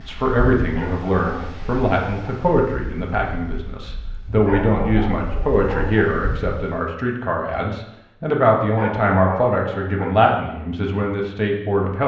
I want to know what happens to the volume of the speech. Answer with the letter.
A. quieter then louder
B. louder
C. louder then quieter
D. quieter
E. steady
E.